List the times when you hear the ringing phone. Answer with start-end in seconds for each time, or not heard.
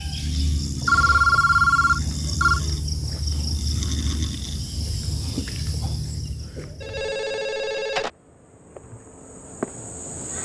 0.8-2.6, 6.8-8.1.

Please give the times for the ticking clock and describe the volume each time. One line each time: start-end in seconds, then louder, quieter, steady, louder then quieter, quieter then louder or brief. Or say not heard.
not heard.